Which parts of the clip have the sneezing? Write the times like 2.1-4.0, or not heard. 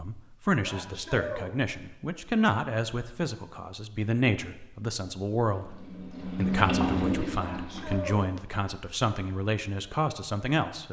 0.6-1.6, 7.3-8.3.